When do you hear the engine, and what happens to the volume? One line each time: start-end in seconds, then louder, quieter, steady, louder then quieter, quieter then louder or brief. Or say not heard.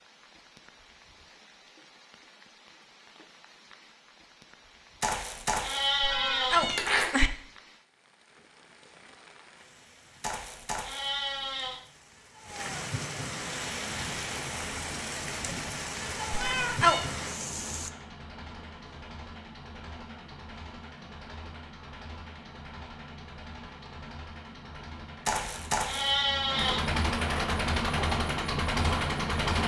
13.7-29.6 louder.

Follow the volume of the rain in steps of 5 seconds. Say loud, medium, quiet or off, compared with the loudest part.
quiet, quiet, loud, loud, off, off.